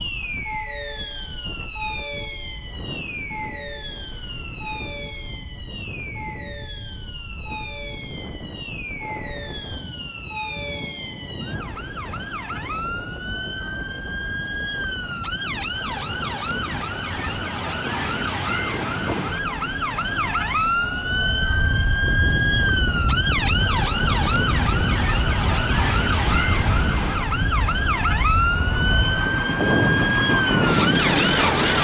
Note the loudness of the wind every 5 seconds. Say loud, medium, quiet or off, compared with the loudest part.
quiet, quiet, quiet, quiet, medium, medium, loud.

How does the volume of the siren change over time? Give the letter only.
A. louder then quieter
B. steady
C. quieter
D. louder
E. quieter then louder
D.